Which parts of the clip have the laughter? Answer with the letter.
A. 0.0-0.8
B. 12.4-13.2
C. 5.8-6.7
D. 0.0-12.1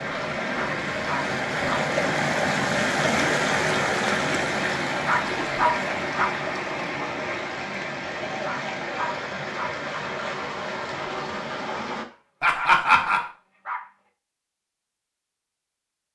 B.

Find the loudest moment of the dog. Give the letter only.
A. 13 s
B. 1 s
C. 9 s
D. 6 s
D.